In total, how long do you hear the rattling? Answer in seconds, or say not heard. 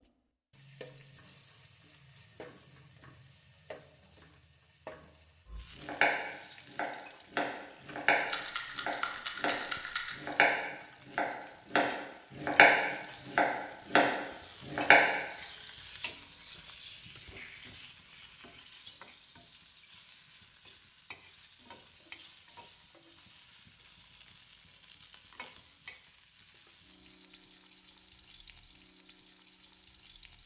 2 s.